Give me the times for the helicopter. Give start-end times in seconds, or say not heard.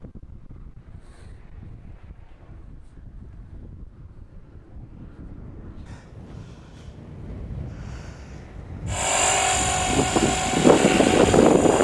8.9-11.7.